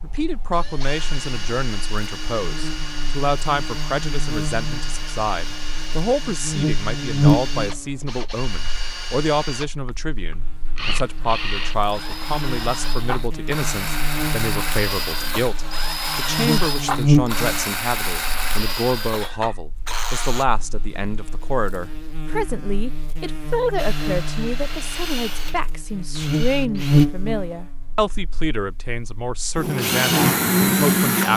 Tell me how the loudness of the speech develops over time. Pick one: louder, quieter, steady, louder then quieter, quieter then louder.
steady.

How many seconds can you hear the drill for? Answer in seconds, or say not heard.
25 s.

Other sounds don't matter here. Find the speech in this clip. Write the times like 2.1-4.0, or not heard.
0.0-31.3.